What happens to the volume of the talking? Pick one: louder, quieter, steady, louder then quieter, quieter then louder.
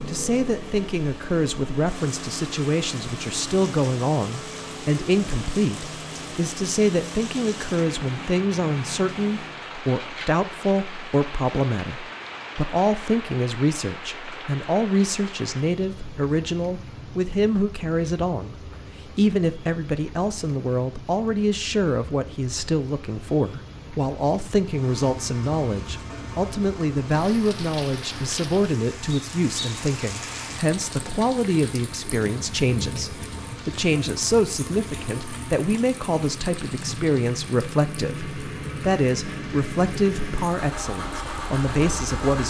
steady.